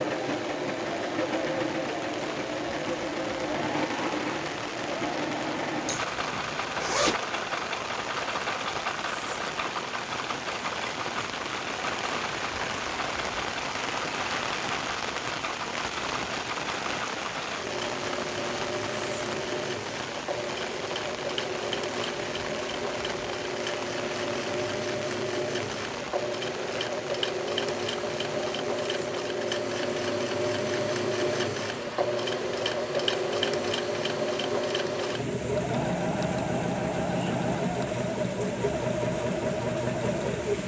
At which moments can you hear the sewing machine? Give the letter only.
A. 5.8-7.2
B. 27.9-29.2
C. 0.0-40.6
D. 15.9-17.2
C.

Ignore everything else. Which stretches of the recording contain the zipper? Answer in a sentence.
The zipper can be heard from 5.8 to 7.2 s.